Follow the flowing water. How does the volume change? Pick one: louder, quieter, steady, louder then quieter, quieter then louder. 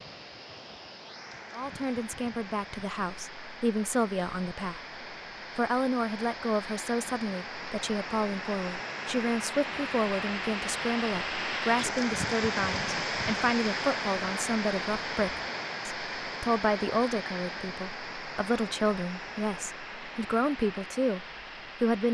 louder then quieter.